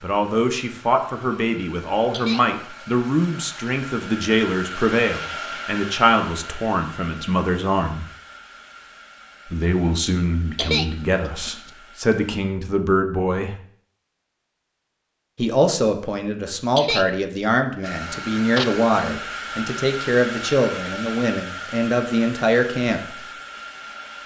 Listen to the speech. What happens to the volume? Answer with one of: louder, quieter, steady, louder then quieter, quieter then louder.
steady.